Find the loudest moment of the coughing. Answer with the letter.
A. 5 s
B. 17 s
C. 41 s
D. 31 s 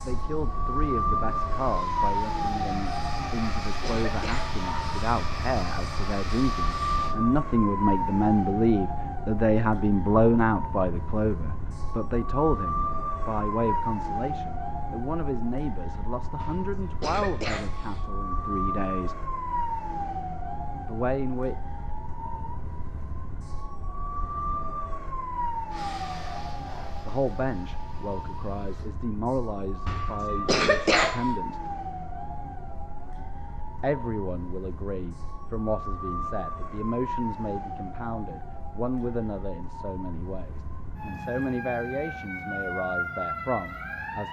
D.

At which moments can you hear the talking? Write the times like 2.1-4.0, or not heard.
0.1-19.1, 20.9-21.6, 27.1-31.7, 33.8-44.2.